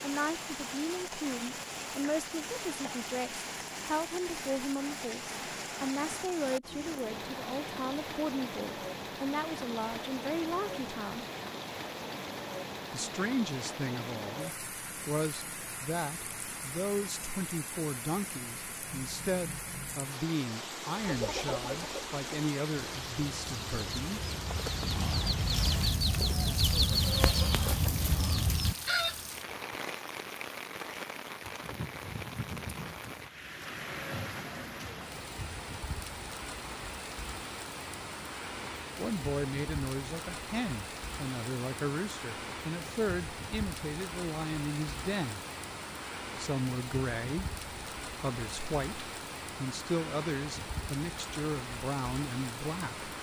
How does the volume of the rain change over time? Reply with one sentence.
The volume of the rain stays about the same.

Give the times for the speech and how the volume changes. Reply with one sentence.
The speech can be heard from 0.0 to 11.2 s, at a steady volume; from 12.9 to 24.2 s, at a steady volume; from 39.0 to 45.4 s, at a steady volume; and from 46.4 to 53.1 s, at a steady volume.